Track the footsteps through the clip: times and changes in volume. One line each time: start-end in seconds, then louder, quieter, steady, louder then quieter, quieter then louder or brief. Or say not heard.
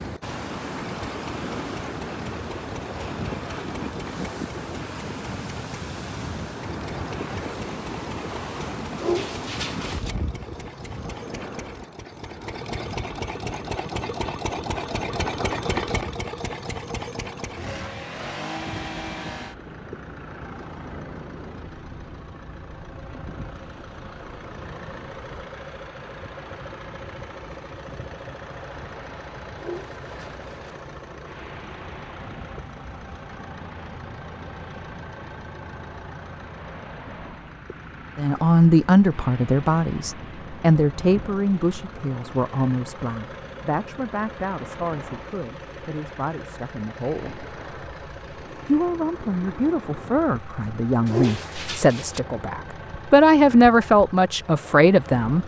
not heard.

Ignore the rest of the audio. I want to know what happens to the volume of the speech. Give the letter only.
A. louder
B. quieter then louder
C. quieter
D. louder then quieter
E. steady
B.